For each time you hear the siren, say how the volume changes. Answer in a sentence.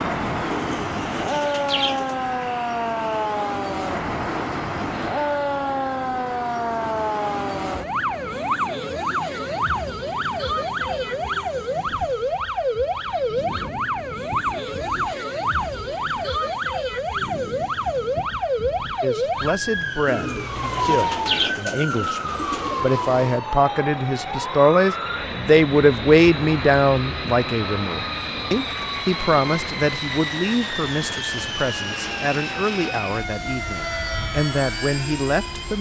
You can hear the siren from 0.0 to 35.7 s, getting quieter.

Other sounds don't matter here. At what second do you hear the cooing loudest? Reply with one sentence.
The volume of the cooing peaks at 21 seconds.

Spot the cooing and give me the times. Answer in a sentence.
You can hear the cooing from 0.5 to 2.1 s and from 20.1 to 22.9 s.